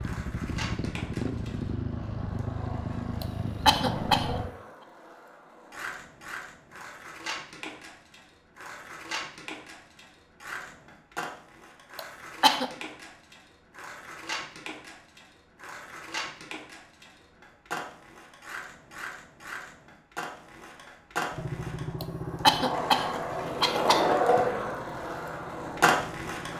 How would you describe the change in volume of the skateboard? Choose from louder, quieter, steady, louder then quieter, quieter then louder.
louder.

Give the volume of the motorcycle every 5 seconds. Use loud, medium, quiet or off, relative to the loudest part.
loud, off, off, off, medium, medium.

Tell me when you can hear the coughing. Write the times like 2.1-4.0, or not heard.
3.2-4.4, 11.9-12.7, 22.0-24.1.